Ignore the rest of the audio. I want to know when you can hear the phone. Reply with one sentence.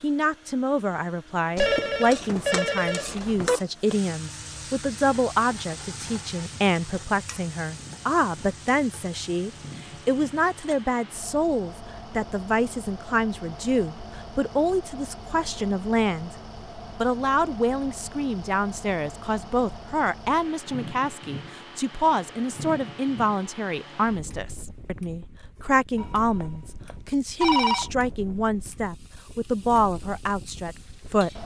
You can hear the phone from 1.6 to 3.6 s and from 25.9 to 27.9 s.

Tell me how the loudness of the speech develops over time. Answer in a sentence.
The loudness of the speech stays about the same.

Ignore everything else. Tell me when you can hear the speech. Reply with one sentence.
The speech can be heard from 0.0 to 16.3 s and from 16.9 to 31.4 s.